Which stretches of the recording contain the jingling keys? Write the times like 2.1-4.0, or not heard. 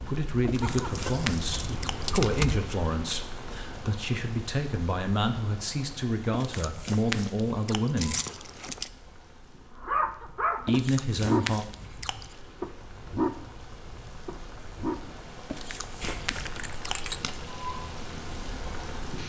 0.8-2.6, 8.0-8.9, 16.0-17.2.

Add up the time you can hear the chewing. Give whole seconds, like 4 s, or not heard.
7 s.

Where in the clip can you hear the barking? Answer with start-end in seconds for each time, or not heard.
9.8-15.0.